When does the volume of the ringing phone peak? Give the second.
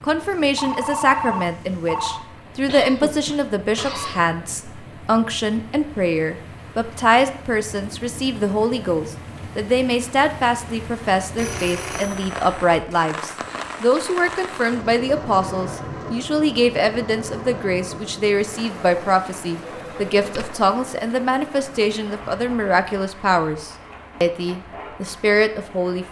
1 s.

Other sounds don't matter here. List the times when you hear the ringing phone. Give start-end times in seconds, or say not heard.
0.2-2.2, 11.3-13.1, 19.8-20.6.